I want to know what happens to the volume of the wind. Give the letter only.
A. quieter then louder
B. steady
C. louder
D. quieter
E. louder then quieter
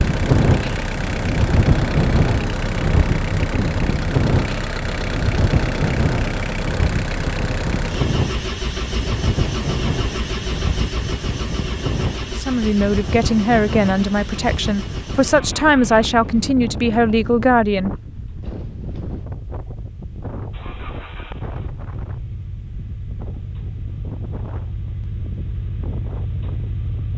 D.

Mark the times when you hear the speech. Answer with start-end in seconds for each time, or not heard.
12.3-17.9.